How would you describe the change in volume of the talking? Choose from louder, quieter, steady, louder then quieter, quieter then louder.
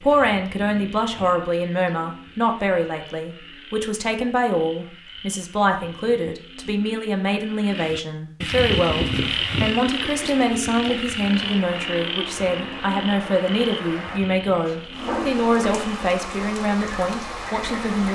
steady.